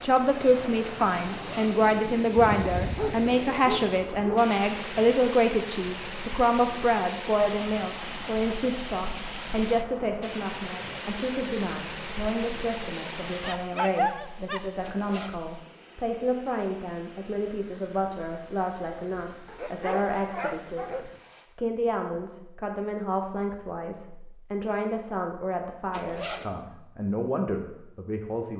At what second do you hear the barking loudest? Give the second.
14 s.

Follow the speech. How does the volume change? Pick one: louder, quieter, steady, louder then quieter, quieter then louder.
quieter.